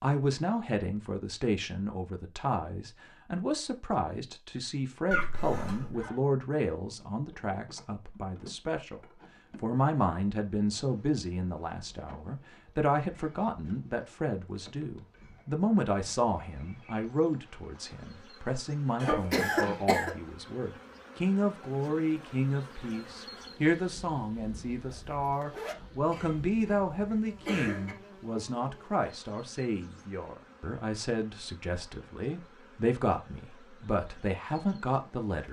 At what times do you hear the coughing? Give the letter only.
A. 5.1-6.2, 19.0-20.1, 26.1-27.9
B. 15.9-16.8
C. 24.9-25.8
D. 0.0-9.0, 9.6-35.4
A.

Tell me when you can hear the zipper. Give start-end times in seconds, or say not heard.
24.9-25.8.